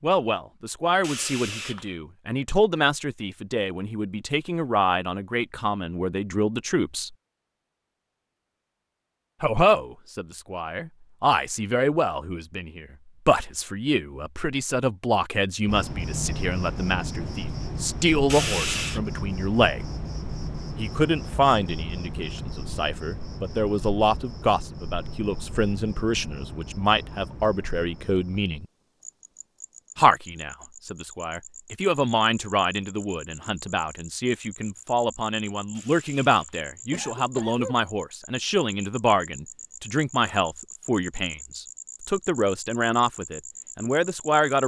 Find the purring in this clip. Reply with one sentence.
The purring can't be heard in this clip.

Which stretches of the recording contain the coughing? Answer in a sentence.
The coughing can be heard from 1.0 to 1.9 s, from 18.3 to 19.0 s and from 35.8 to 37.8 s.